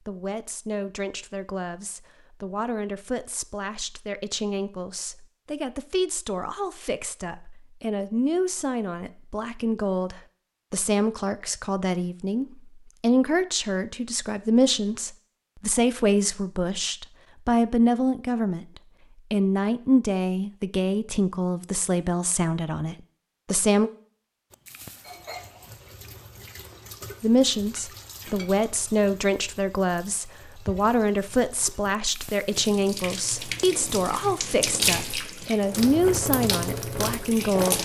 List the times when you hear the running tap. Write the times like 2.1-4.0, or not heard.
24.5-37.8.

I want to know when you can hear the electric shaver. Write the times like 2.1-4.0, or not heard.
not heard.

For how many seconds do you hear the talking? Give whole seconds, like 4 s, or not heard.
34 s.